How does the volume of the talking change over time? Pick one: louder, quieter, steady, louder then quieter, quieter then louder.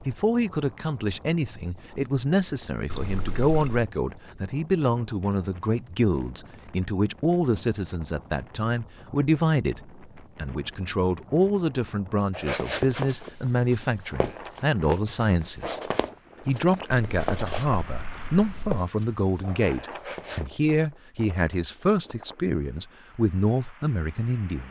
steady.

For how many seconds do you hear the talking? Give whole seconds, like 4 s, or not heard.
24 s.